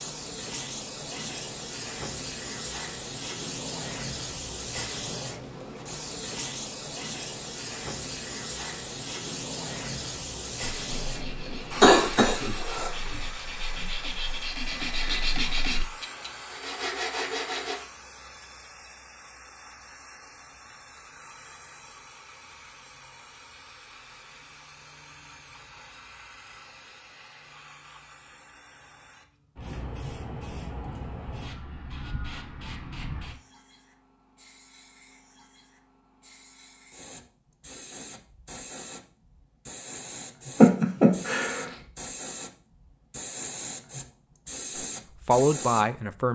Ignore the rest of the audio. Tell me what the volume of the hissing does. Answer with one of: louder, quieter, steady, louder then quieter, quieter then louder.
quieter then louder.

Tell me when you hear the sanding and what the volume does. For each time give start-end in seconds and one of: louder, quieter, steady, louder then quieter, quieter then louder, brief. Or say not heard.
10.8-17.8 louder.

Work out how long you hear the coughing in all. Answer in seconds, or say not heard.
2 s.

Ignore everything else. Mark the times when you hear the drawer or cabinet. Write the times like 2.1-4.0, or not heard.
not heard.